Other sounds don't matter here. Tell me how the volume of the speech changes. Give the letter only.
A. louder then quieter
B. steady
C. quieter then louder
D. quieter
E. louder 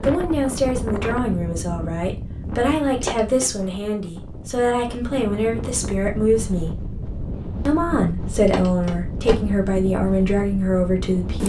B.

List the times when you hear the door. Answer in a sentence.
The door can be heard from 3.0 to 3.5 s and from 8.4 to 9.3 s.